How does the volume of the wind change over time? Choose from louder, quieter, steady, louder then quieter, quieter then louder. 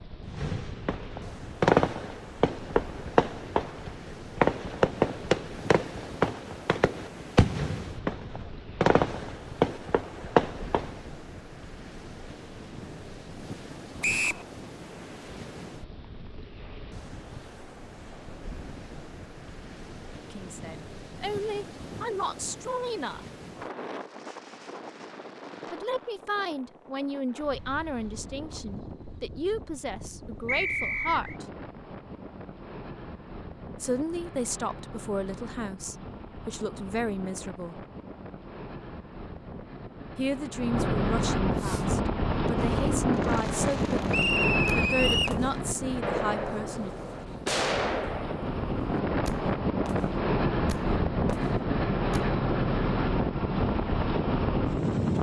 louder.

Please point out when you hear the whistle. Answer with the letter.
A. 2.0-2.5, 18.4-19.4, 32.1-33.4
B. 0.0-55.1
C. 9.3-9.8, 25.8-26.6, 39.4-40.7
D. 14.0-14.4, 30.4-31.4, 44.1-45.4
D.